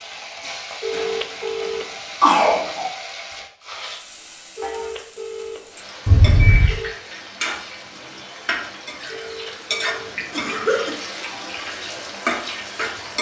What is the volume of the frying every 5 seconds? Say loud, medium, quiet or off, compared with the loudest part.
medium, loud, loud.